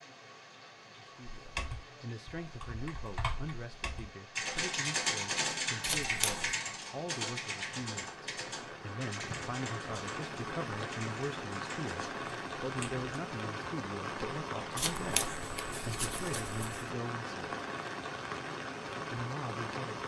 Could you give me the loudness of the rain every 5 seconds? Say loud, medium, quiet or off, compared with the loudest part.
quiet, medium, loud, loud.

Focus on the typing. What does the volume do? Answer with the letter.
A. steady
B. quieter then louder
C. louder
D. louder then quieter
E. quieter
D.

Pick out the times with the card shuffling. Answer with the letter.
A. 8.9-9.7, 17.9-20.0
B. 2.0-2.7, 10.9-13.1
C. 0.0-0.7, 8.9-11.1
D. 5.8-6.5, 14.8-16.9
D.